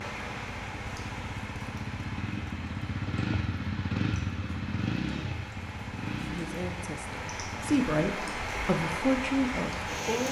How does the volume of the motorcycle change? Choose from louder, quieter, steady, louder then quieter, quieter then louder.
louder then quieter.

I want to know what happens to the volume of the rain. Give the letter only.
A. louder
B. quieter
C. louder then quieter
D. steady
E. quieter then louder
E.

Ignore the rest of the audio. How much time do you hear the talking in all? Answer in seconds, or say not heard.
4 s.